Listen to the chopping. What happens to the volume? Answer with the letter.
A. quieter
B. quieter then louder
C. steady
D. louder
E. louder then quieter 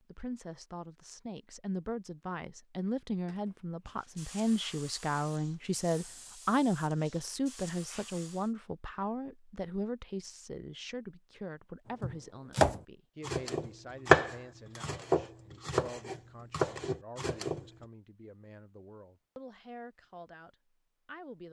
A.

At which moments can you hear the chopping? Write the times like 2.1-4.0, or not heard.
12.0-17.6.